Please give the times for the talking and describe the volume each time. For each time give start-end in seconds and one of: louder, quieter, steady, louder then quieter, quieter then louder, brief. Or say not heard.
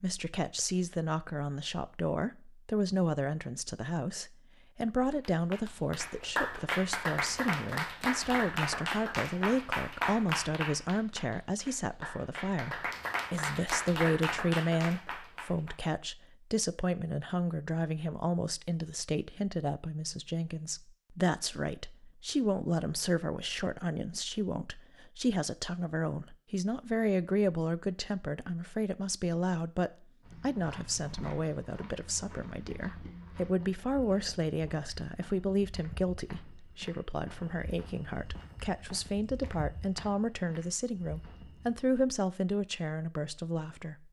0.0-44.0 steady.